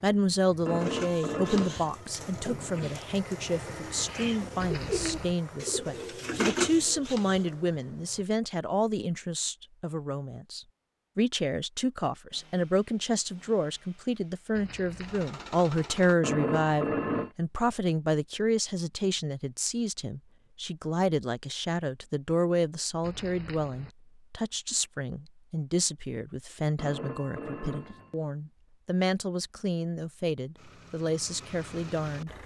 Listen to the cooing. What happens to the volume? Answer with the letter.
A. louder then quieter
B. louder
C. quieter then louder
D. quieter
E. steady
B.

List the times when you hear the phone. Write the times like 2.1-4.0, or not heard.
0.7-2.0, 16.2-17.3, 26.8-28.1.